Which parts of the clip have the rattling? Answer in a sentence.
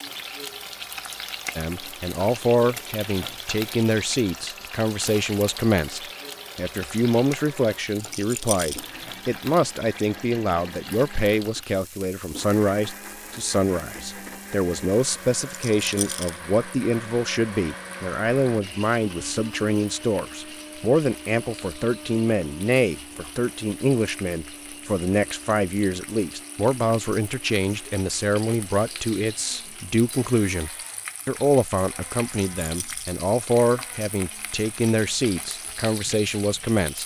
You can hear the rattling from 8.0 to 8.8 s, from 15.4 to 16.4 s and from 32.2 to 33.1 s.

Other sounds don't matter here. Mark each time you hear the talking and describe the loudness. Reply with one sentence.
The talking can be heard from 1.6 to 37.0 s, at a steady volume.